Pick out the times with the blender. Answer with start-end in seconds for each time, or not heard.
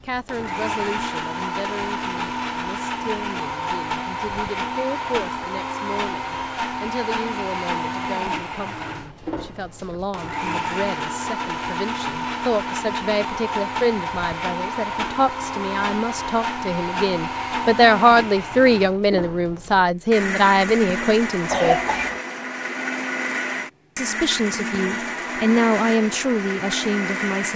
0.0-27.5.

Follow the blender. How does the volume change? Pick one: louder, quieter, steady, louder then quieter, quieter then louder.
steady.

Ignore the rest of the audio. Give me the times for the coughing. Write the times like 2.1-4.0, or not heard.
21.5-22.2.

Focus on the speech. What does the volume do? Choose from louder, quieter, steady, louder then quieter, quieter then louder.
louder.